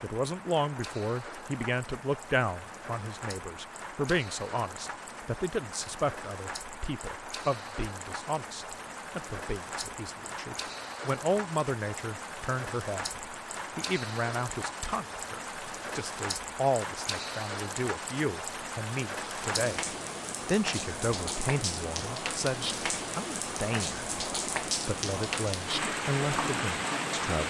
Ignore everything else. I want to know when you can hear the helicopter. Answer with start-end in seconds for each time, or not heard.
not heard.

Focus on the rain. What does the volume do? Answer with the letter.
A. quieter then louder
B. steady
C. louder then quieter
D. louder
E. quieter
D.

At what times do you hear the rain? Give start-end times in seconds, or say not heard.
0.0-27.4.